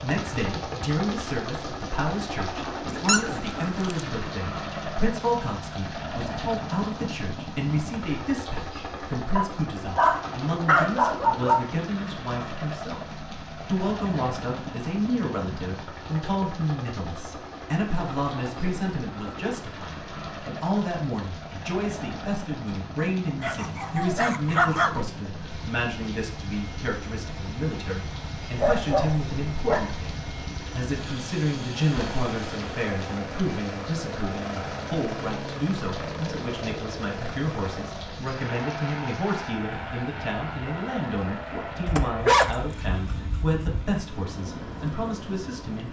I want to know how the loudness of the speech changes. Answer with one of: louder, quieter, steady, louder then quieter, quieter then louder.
steady.